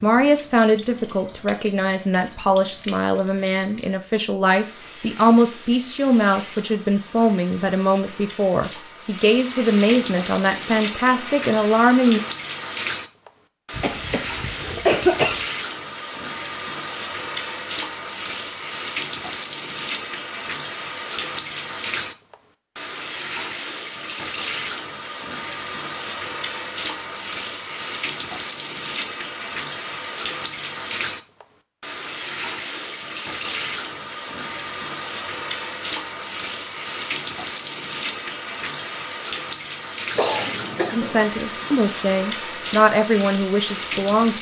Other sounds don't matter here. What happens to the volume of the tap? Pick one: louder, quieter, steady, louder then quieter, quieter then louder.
louder.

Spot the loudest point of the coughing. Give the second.
15 s.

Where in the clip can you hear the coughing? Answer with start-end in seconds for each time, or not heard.
13.8-15.4, 40.1-41.1.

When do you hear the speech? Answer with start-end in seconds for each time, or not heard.
0.0-12.2, 40.9-44.3.